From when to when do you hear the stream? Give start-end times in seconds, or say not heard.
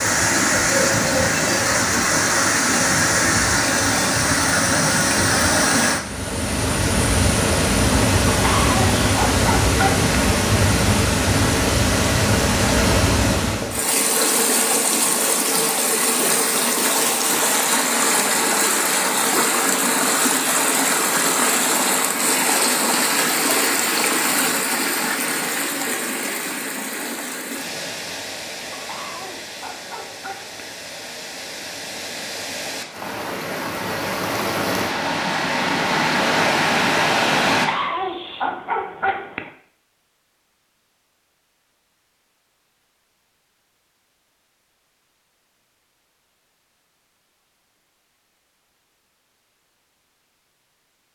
0.0-37.7.